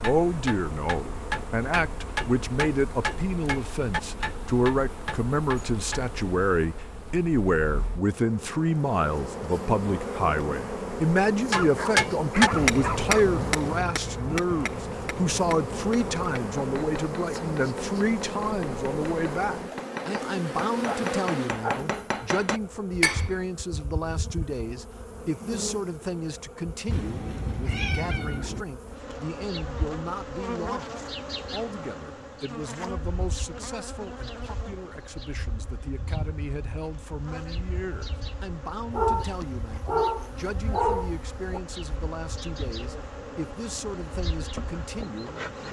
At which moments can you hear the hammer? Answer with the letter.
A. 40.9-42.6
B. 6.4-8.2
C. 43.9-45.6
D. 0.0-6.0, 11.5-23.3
D.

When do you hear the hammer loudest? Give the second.
13 s.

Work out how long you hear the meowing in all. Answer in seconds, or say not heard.
2 s.